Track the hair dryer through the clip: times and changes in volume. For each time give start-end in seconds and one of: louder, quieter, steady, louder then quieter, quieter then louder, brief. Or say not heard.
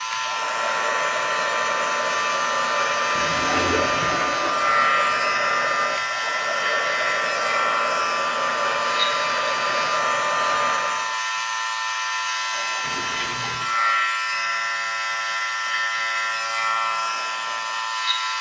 0.1-11.2 steady.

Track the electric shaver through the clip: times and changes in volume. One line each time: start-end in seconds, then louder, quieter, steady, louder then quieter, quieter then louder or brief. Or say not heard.
0.0-18.3 steady.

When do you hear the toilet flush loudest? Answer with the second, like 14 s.
4 s.